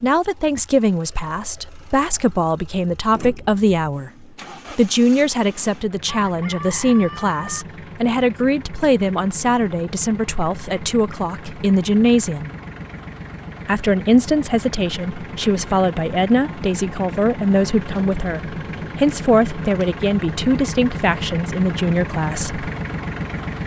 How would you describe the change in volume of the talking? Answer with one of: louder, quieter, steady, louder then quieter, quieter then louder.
steady.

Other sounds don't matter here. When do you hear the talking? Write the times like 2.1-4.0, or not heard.
0.0-4.1, 4.7-12.5, 13.7-22.7.